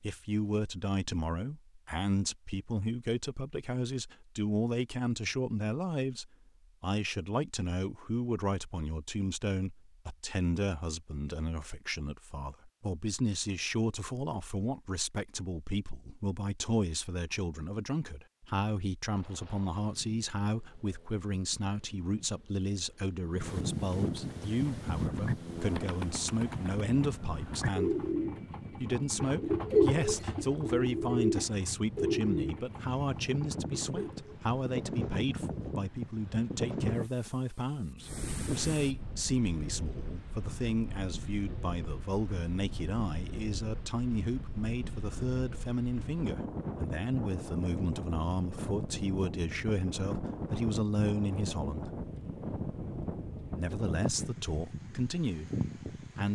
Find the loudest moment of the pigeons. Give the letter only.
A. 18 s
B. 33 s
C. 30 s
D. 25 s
C.